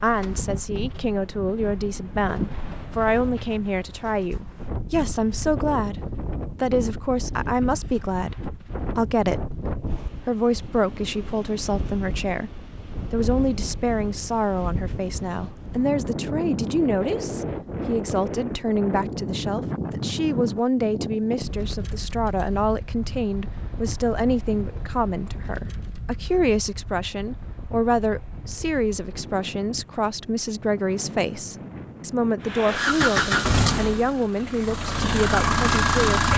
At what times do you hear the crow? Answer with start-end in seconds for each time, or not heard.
not heard.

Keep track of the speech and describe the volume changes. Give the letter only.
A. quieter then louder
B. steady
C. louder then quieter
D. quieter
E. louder
B.